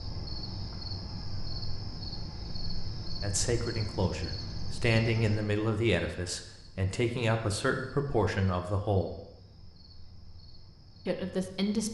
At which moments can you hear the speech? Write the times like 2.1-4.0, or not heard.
3.2-9.2, 11.1-11.8.